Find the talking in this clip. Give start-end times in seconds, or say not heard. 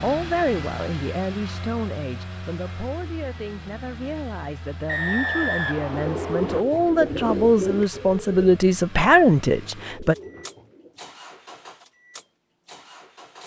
0.0-10.2.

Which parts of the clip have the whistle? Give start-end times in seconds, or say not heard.
4.8-6.7.